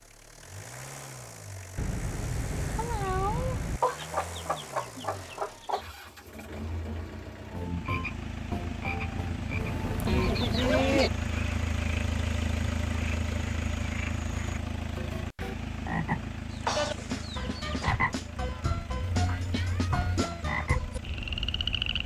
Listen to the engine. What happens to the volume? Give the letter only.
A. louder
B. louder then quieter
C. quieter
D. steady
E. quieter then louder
B.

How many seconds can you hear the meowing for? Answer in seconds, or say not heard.
5 s.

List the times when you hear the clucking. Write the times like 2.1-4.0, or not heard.
3.8-5.8, 10.1-11.1, 16.4-18.0.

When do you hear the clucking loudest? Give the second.
11 s.